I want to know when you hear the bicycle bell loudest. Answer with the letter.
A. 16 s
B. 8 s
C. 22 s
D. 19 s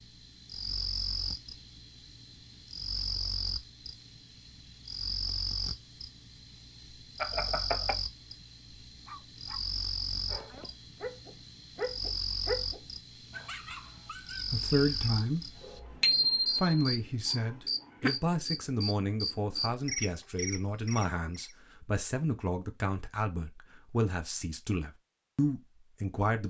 A.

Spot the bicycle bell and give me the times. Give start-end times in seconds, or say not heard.
7.2-8.0, 16.0-16.7.